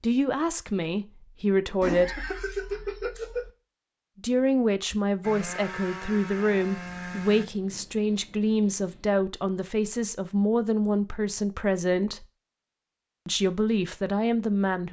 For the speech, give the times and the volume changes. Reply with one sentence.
The speech can be heard briefly from 0.0 to 2.1 s; from 4.2 to 12.2 s, at a steady volume; and briefly from 13.2 to 14.8 s.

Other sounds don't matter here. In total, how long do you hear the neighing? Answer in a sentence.
The neighing can be heard for 2 seconds in total.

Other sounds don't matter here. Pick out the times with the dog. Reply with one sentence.
The dog can't be heard in this clip.